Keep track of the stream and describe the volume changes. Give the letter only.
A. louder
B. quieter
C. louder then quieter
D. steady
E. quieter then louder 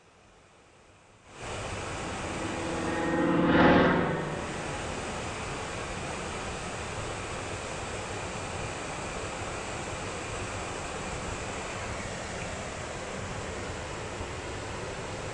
D.